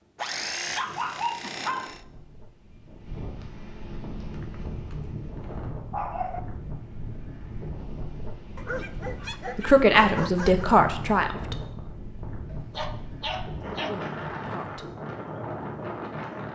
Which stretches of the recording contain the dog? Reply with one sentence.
The dog can be heard from 0.1 to 2.0 s, from 4.4 to 5.1 s, from 5.9 to 6.4 s, from 8.6 to 10.7 s and from 12.5 to 14.1 s.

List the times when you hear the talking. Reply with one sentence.
You can hear the talking from 9.6 to 11.6 s and from 13.8 to 14.9 s.